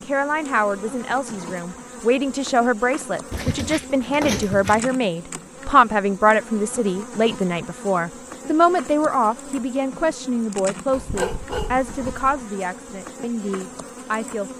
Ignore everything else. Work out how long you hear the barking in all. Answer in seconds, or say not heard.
3 s.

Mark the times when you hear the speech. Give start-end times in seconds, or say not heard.
0.0-14.5.